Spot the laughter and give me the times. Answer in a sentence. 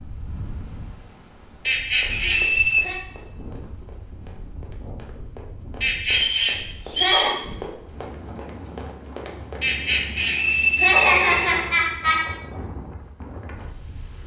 The laughter can be heard from 1.6 to 3.0 s, from 5.8 to 7.3 s and from 9.6 to 12.2 s.